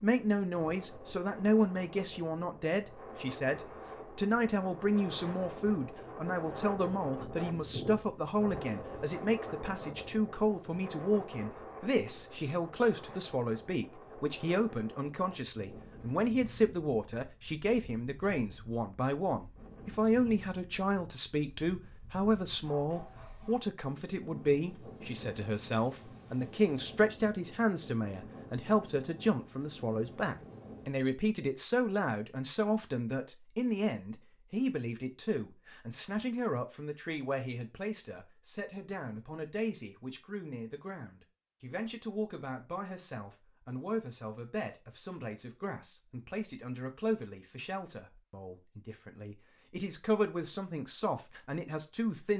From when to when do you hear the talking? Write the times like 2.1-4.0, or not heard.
0.0-52.3.